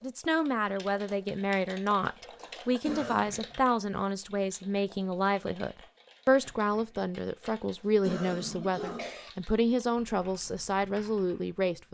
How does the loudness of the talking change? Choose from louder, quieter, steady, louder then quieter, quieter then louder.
steady.